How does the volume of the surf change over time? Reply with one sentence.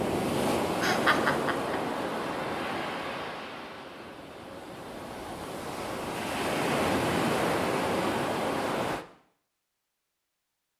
The volume of the surf goes down, then up.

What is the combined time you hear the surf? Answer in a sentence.
You can hear the surf for 9 seconds altogether.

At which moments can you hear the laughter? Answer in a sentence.
You can hear the laughter from 0.8 to 1.8 s.